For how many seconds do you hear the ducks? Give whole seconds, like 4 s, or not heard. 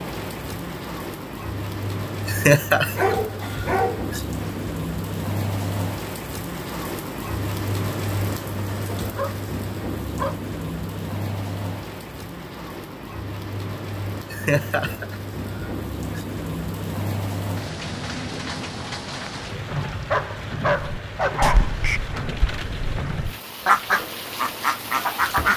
5 s.